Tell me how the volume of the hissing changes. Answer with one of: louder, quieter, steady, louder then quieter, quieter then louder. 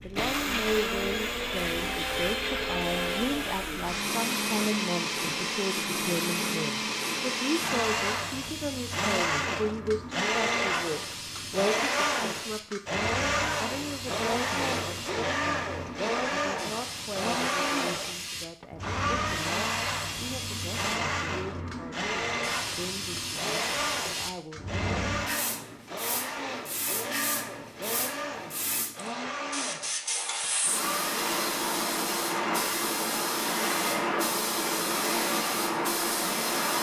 louder.